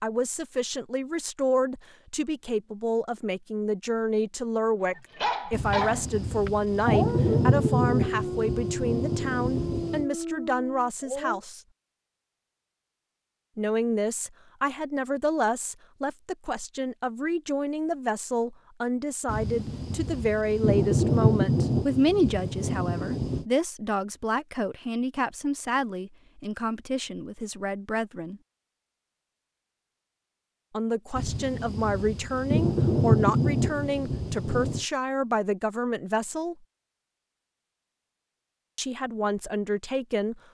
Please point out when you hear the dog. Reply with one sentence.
The dog can be heard from 5.0 to 11.4 s.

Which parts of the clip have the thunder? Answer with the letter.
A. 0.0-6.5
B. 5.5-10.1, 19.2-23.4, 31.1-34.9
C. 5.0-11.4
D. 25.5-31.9
B.